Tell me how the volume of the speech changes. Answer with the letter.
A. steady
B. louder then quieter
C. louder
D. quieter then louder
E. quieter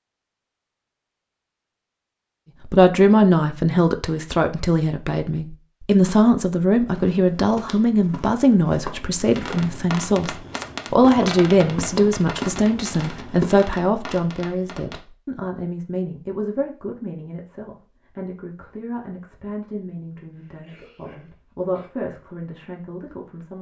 E.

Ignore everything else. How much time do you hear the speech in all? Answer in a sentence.
You can hear the speech for 21 seconds altogether.